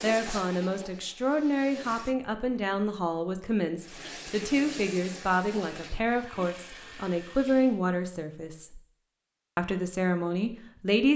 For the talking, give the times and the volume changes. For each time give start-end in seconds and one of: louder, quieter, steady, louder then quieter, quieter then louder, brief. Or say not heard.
0.0-8.8 steady
9.6-11.1 brief.